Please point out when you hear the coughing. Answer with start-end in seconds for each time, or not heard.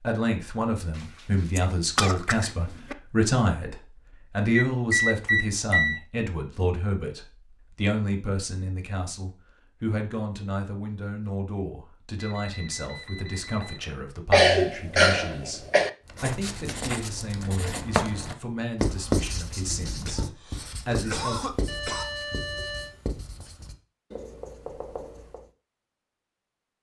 1.6-3.0, 14.3-15.9, 20.1-22.1.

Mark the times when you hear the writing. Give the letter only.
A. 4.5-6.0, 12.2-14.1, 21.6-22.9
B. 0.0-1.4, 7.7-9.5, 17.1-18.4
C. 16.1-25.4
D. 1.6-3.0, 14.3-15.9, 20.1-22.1
C.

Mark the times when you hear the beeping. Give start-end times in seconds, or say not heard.
4.5-6.0, 12.2-14.1, 21.6-22.9.